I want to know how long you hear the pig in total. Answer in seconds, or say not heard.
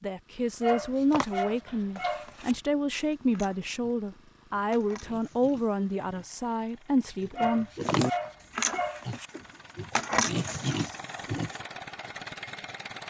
10 s.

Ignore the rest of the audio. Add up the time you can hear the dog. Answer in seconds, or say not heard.
4 s.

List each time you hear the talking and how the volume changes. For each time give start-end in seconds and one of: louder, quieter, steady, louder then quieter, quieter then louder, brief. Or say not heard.
0.0-7.7 steady.